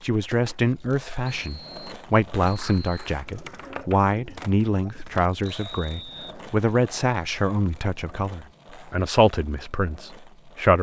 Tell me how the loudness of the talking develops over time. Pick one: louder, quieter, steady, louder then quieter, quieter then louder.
steady.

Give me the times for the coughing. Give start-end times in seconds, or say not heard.
not heard.